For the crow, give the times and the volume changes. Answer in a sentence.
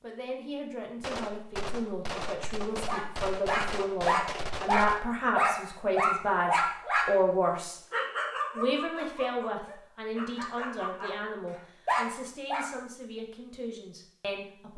The crow can't be heard in this clip.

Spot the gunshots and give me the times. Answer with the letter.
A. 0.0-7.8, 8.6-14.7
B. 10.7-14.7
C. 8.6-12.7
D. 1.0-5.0
D.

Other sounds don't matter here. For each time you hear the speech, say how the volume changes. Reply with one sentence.
You can hear the speech from 0.0 to 7.8 s, getting louder; and from 8.6 to 14.7 s, getting quieter.